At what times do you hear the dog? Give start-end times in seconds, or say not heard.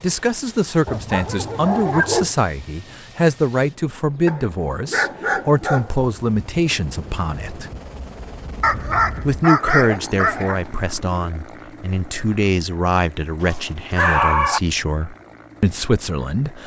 0.8-2.4, 4.2-6.0, 8.6-10.6, 13.4-14.6.